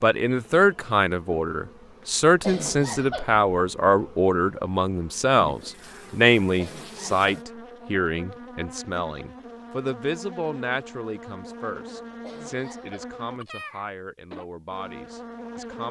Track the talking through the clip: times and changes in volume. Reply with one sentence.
You can hear the talking from 0.0 to 15.8 s, getting quieter.